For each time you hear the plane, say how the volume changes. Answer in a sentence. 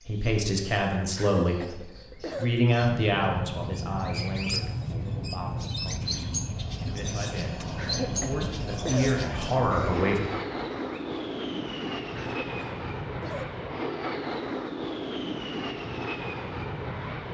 The plane can be heard from 2.9 to 17.3 s, at a steady volume.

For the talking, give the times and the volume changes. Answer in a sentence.
You can hear the talking from 0.1 to 10.2 s, getting quieter then louder.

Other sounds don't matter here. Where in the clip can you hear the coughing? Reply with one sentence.
You can hear the coughing from 1.1 to 2.5 s, from 7.8 to 9.1 s and from 12.2 to 13.4 s.